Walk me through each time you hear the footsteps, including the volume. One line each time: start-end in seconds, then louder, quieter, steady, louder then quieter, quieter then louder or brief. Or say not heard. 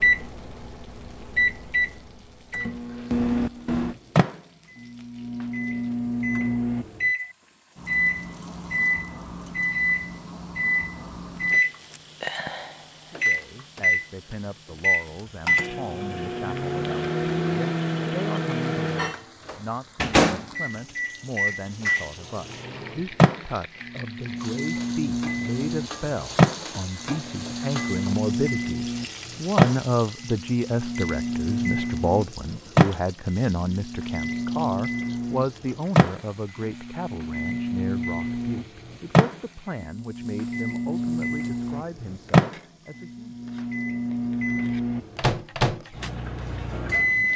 not heard.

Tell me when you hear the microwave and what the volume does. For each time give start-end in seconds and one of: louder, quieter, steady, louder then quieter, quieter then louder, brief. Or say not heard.
0.0-47.3 steady.